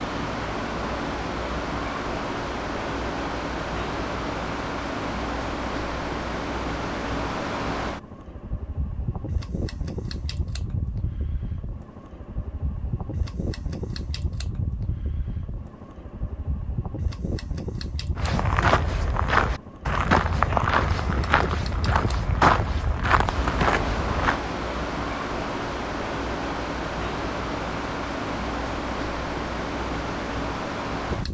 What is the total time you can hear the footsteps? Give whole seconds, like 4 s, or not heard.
6 s.